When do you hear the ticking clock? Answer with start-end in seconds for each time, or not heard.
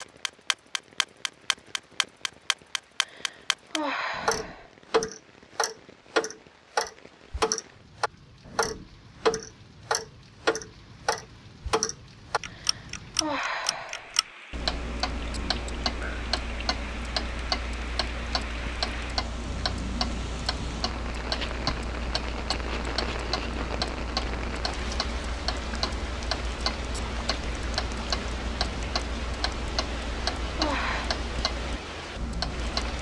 0.0-32.9.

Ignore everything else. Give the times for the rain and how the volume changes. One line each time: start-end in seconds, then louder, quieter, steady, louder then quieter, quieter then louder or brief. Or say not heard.
0.0-32.9 louder.